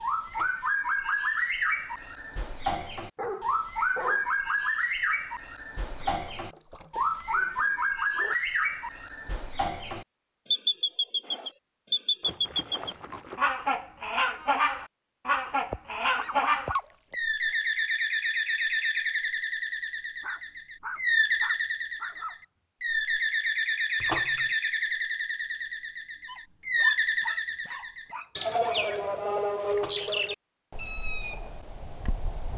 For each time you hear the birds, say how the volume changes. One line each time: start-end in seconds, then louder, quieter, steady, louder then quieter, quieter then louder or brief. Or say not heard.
0.0-32.5 steady.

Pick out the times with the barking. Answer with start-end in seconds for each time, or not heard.
3.1-4.7, 7.2-8.3, 15.7-17.1, 20.2-22.4, 26.2-28.8.